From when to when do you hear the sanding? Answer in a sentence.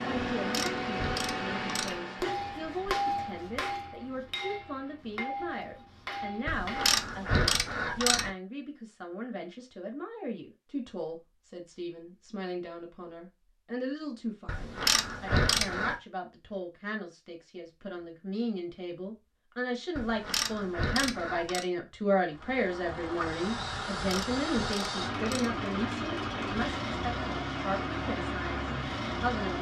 You can't hear the sanding here.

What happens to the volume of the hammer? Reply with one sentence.
The loudness of the hammer goes down.